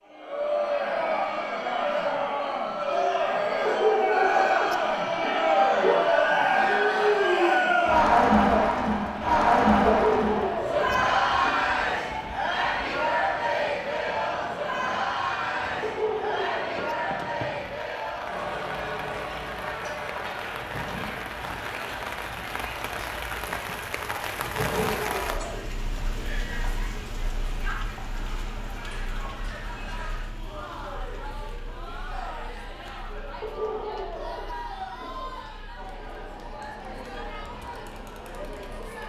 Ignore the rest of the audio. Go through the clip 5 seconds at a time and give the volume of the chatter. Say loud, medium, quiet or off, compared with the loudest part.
medium, loud, medium, medium, quiet, quiet, quiet, quiet.